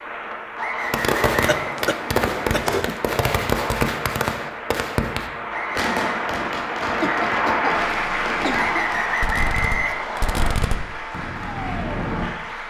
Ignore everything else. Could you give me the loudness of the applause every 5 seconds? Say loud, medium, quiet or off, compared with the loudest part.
medium, loud, medium.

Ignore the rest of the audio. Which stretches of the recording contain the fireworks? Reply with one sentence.
You can hear the fireworks from 0.8 to 12.3 s.